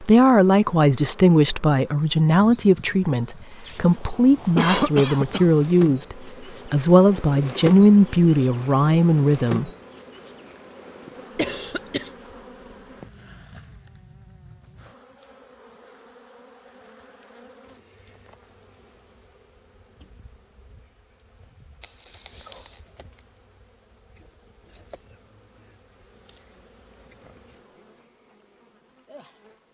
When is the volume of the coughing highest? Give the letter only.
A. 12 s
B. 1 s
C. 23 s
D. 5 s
D.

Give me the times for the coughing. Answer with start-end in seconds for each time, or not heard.
4.5-5.5, 11.3-12.1, 21.8-22.7.